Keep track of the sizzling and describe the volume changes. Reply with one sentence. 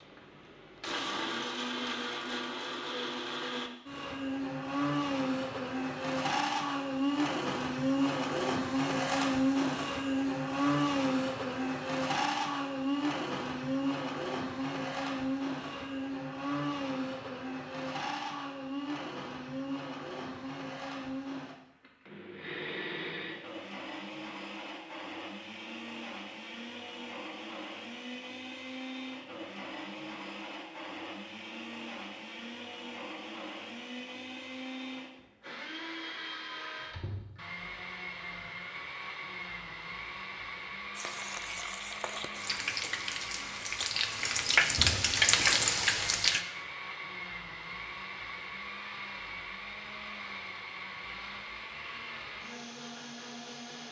The volume of the sizzling goes up.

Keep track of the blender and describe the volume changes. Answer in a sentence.
The volume of the blender goes down.